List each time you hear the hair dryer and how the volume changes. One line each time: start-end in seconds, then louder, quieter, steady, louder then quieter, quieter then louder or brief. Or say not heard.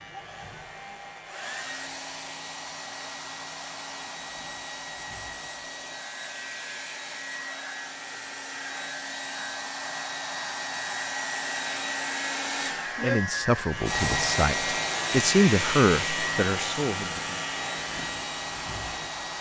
0.0-19.3 louder.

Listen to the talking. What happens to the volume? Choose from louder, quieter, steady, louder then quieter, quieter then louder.
louder then quieter.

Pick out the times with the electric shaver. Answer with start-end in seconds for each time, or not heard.
0.0-19.3.